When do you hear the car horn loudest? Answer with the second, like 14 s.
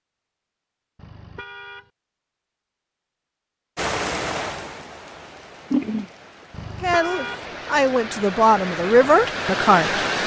7 s.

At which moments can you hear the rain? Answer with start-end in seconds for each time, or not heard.
3.8-10.2.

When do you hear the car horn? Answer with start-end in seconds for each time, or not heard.
0.9-1.9, 6.5-7.5.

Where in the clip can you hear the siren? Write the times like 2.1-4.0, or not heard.
not heard.